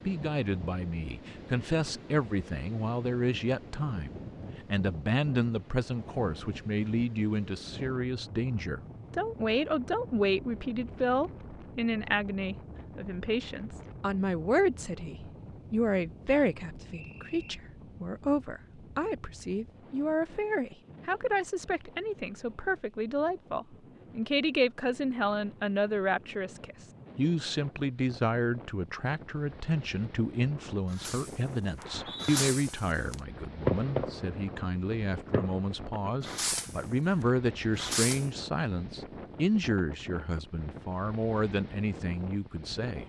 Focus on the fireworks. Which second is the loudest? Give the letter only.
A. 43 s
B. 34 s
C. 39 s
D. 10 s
B.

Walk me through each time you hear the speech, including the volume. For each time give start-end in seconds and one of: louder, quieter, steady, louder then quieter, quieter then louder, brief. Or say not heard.
0.1-43.0 steady.